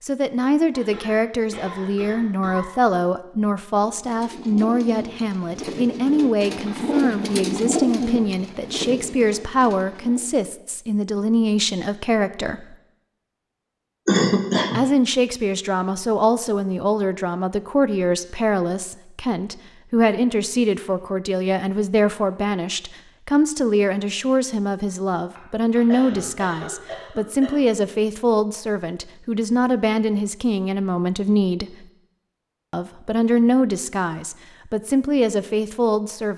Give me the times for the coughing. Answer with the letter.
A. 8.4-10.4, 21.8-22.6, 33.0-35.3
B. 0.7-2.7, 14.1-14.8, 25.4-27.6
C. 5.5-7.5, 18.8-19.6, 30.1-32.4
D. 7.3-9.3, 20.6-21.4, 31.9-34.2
B.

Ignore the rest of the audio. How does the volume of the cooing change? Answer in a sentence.
The volume of the cooing goes up, then down.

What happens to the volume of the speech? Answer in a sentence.
The volume of the speech stays about the same.